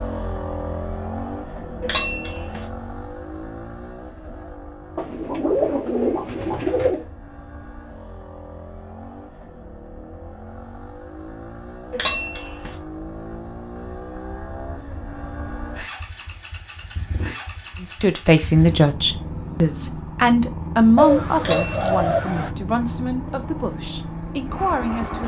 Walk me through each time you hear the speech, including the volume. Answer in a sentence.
You can hear the speech from 17.8 to 25.2 s, getting quieter.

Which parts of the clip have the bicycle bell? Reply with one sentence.
You can hear the bicycle bell from 1.8 to 2.6 s, from 11.9 to 12.8 s and from 21.4 to 22.2 s.